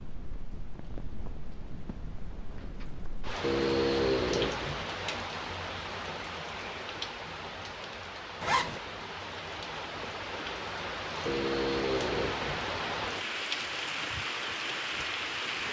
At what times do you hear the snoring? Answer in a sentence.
The snoring can be heard from 3.4 to 4.8 s and from 11.2 to 12.7 s.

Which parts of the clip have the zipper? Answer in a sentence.
The zipper can be heard from 8.4 to 8.8 s.